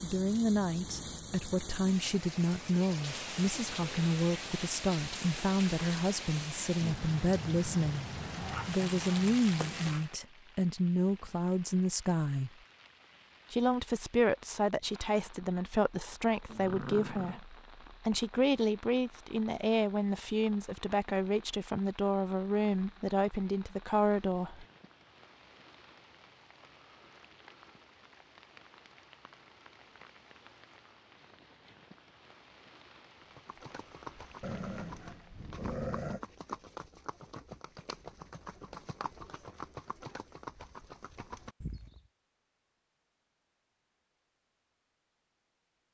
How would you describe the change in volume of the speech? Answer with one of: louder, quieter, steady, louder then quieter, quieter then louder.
steady.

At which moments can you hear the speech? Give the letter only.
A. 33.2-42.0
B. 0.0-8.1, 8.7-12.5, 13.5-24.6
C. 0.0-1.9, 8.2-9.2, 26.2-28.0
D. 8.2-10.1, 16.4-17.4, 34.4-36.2
B.